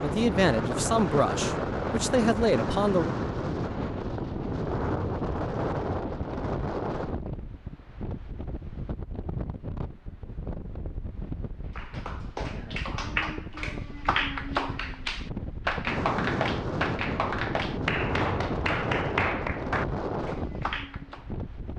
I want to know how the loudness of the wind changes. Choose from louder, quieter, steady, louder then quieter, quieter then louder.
quieter then louder.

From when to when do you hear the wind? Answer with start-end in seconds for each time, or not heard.
0.0-21.7.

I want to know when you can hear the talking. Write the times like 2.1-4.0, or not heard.
0.0-3.1.